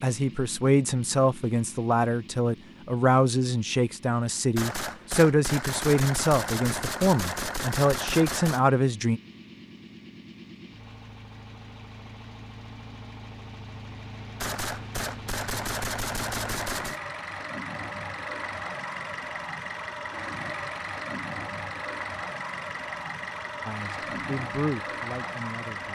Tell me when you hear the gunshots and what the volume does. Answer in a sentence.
The gunshots can be heard from 4.5 to 8.7 s, at a steady volume; and briefly from 14.4 to 17.0 s.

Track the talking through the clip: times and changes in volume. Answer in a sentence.
You can hear the talking from 0.0 to 9.2 s, at a steady volume; and briefly from 23.6 to 25.9 s.